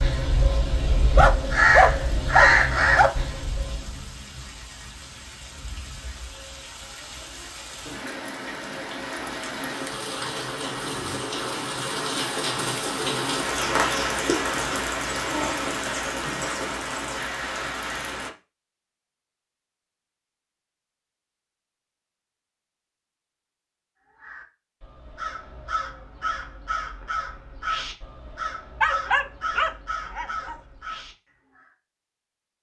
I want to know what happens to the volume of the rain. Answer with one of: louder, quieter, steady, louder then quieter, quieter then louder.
louder.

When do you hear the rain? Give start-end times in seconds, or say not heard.
0.0-18.3.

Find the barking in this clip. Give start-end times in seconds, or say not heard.
1.1-3.1, 28.8-30.6.